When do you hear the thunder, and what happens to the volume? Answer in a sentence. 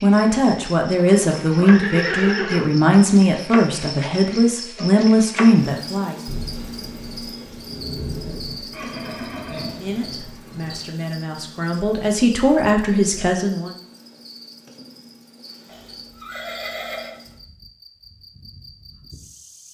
The thunder can be heard from 6.2 to 10.8 s, getting louder then quieter.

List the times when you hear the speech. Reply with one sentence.
You can hear the speech from 0.0 to 6.2 s and from 9.8 to 13.8 s.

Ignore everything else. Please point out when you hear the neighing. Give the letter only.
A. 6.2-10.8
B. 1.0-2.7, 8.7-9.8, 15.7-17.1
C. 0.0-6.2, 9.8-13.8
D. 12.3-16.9
B.